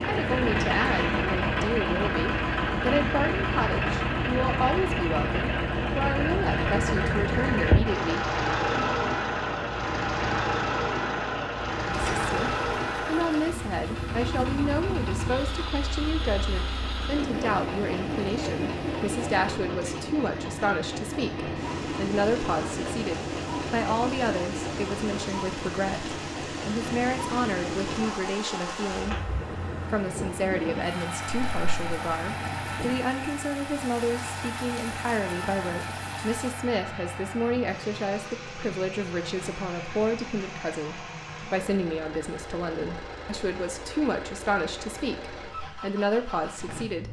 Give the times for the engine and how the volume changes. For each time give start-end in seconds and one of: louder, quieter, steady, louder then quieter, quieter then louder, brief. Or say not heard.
0.0-47.0 quieter.